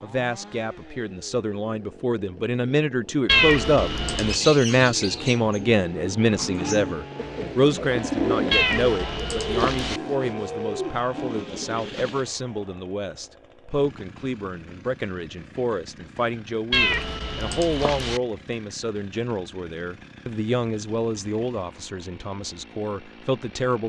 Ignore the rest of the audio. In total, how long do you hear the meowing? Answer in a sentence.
You can hear the meowing for 4 seconds altogether.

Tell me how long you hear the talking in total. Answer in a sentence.
The talking can be heard for 24 seconds in total.